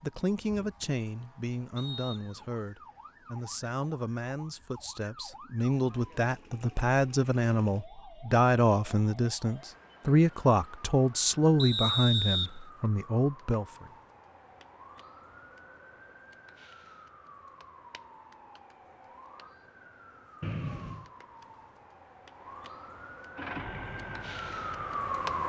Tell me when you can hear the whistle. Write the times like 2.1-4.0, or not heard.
1.8-2.4, 11.6-12.5, 20.4-21.1.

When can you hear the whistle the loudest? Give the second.
12 s.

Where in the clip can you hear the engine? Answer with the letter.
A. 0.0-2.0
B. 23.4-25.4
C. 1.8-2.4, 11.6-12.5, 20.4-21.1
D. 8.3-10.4
B.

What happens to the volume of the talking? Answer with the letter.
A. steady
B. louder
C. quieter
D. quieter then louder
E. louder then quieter
B.